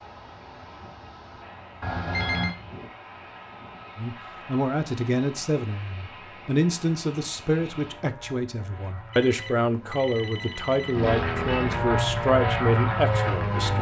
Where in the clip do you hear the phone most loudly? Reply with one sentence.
The loudest moment of the phone is at 2 seconds.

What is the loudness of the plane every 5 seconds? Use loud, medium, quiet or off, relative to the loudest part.
quiet, quiet, loud.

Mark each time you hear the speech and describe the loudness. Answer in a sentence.
The speech can be heard from 4.0 to 13.7 s, at a steady volume.